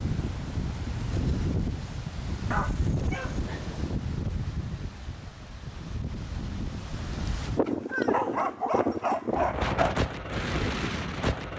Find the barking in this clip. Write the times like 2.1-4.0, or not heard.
2.5-3.4, 7.7-9.9.